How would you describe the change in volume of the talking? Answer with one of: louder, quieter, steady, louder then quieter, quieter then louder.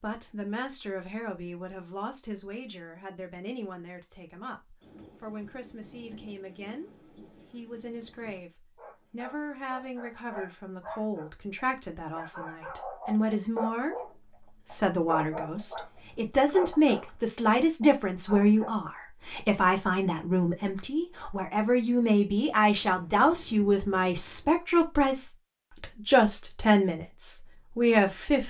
louder.